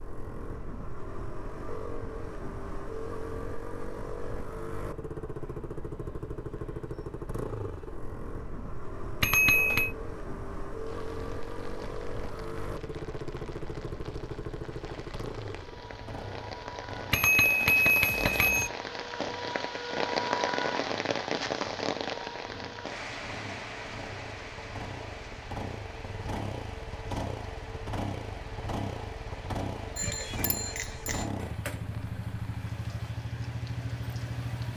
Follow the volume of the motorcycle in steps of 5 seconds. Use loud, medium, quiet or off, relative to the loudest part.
loud, loud, loud, medium, medium, loud, loud.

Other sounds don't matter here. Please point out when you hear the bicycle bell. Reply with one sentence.
You can hear the bicycle bell from 9.2 to 9.9 s, from 17.1 to 18.7 s and from 29.9 to 31.2 s.